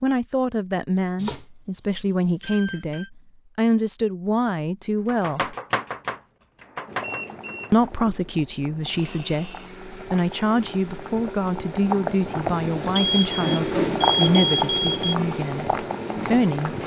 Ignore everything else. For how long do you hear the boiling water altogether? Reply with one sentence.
You can hear the boiling water for 10 seconds altogether.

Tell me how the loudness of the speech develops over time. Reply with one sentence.
The volume of the speech stays about the same.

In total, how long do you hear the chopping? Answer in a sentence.
The chopping can be heard for 3 seconds in total.